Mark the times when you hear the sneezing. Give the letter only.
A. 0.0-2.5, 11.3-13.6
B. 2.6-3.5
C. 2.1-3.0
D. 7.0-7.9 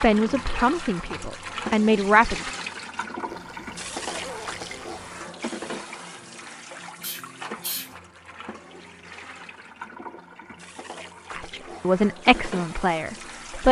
D.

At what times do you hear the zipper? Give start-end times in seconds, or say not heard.
3.2-5.2.